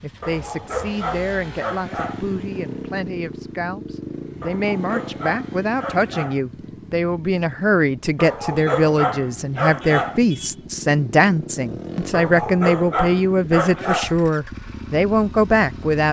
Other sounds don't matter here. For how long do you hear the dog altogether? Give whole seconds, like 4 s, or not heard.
8 s.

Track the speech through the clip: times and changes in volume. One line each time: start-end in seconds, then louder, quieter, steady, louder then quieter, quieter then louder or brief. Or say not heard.
0.0-16.0 louder.